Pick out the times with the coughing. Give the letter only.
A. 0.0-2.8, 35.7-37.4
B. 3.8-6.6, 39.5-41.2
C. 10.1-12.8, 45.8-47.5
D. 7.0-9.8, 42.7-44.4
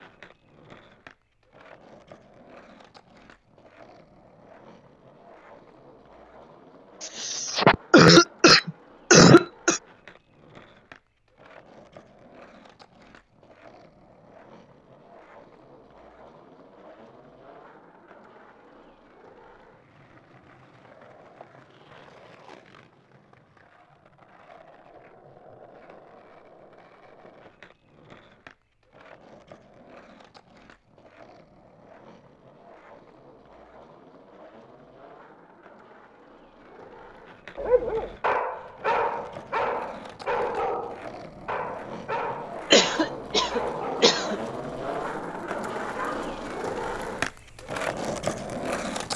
D.